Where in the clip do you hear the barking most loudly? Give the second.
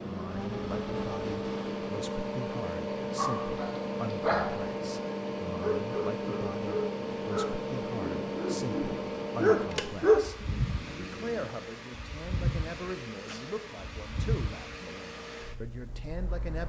10 s.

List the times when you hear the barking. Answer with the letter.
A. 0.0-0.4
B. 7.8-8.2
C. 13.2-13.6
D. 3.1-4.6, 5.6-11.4
D.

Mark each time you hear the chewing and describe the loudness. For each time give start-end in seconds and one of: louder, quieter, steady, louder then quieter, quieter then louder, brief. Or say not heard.
not heard.